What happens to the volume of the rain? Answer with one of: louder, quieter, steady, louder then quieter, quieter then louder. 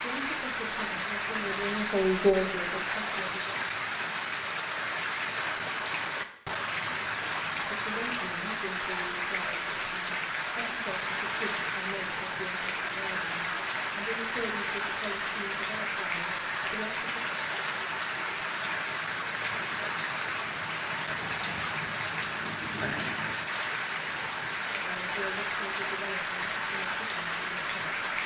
steady.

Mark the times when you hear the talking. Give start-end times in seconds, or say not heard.
0.0-3.5, 7.6-17.4, 24.7-28.0.